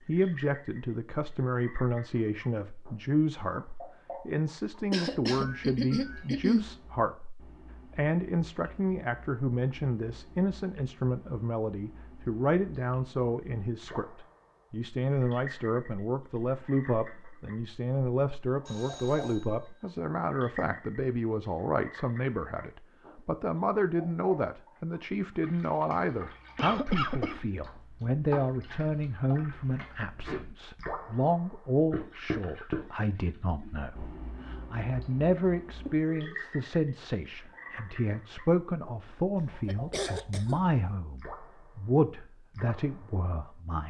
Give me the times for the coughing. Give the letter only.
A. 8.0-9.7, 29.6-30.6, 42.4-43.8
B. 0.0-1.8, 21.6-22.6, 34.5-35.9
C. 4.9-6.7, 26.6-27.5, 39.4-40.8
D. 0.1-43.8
C.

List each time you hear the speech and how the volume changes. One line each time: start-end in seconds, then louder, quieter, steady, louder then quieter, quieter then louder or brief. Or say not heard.
0.1-43.8 steady.